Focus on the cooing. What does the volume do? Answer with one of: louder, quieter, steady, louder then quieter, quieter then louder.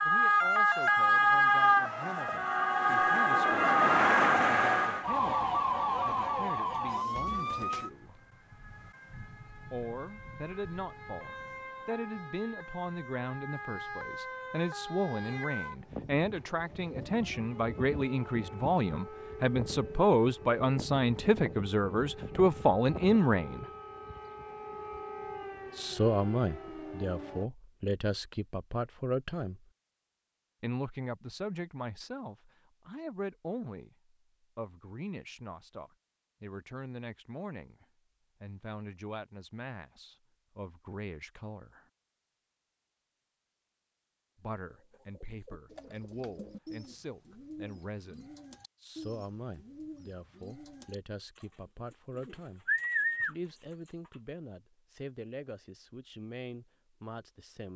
louder.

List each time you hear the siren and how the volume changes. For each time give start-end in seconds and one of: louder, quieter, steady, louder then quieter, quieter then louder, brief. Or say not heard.
0.0-27.5 quieter.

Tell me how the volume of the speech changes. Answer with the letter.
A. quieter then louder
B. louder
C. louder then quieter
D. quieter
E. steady
C.